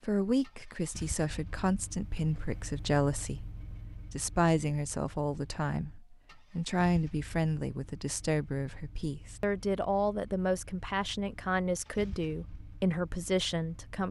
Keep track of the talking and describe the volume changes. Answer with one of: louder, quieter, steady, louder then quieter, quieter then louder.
steady.